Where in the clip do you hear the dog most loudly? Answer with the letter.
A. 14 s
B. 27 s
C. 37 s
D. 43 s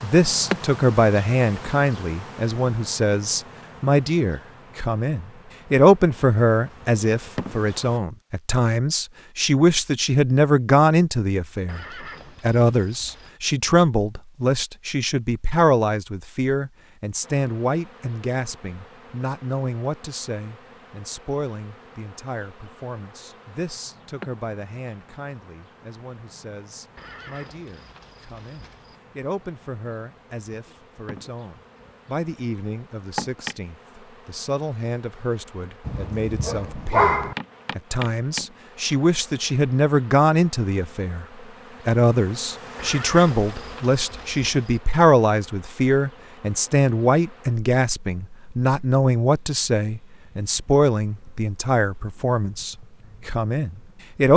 C.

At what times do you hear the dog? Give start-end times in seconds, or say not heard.
35.9-37.4.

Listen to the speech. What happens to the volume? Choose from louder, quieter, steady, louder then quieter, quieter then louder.
quieter then louder.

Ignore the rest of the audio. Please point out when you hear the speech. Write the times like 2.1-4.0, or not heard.
0.0-41.2, 41.9-54.3.